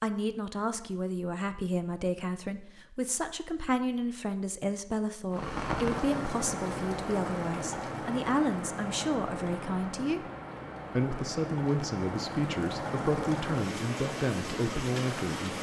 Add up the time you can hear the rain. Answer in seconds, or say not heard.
10 s.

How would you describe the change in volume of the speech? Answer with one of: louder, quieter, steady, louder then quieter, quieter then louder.
steady.